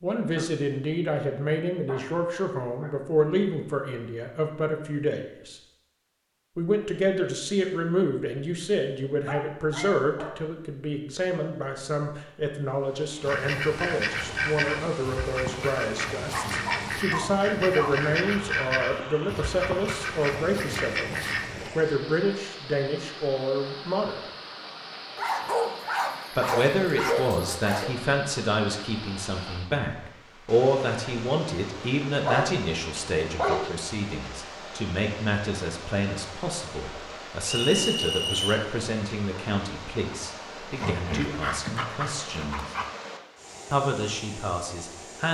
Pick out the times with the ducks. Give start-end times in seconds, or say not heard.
13.2-21.7.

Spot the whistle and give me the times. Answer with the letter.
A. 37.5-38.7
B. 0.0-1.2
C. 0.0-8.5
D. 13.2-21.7
A.